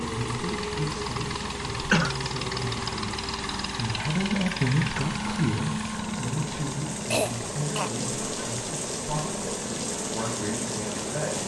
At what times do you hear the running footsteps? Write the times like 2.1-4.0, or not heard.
not heard.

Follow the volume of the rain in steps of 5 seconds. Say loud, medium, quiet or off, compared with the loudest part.
medium, loud, loud.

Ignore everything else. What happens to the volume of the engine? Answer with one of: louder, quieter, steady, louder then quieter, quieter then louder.
quieter.